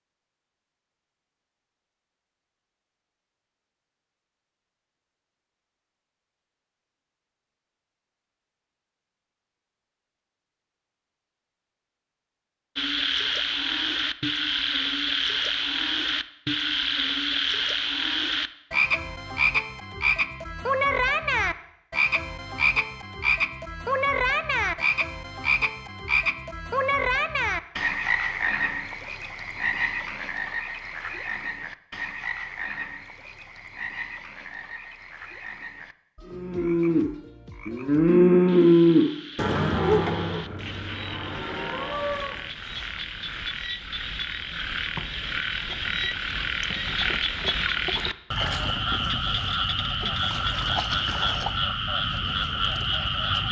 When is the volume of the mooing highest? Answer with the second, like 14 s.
39 s.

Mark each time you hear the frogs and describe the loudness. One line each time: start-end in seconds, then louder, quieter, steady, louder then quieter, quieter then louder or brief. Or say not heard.
12.8-53.4 quieter then louder.